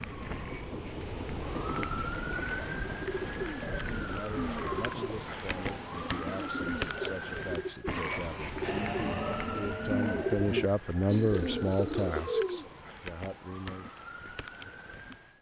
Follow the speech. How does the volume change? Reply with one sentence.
The volume of the speech goes up, then down.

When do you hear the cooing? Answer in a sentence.
The cooing can be heard from 2.4 to 12.7 s.